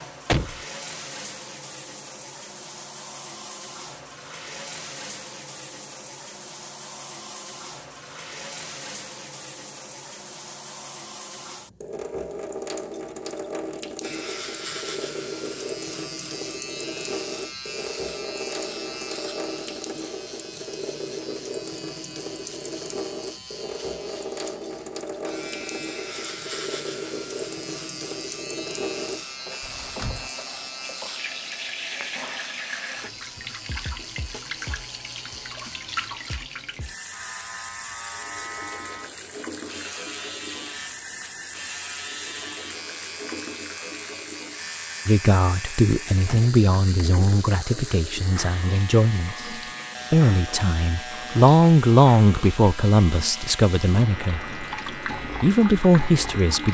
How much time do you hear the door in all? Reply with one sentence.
You can hear the door for 2 seconds altogether.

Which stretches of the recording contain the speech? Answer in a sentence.
The speech can be heard from 45.0 to 54.5 s and from 55.4 to 56.6 s.